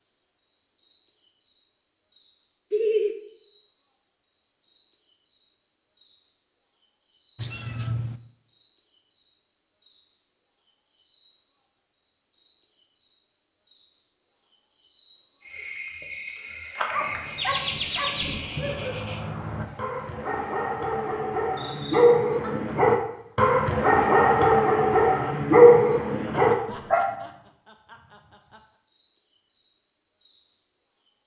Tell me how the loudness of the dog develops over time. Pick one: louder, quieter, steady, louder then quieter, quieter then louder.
louder.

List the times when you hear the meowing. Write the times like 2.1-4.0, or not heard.
7.3-8.2.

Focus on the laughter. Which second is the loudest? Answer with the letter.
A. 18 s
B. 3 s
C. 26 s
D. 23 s
B.